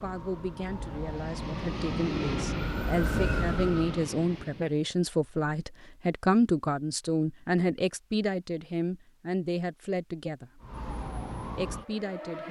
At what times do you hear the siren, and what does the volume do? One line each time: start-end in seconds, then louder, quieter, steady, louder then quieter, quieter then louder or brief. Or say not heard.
0.0-4.1 louder
10.6-12.4 brief.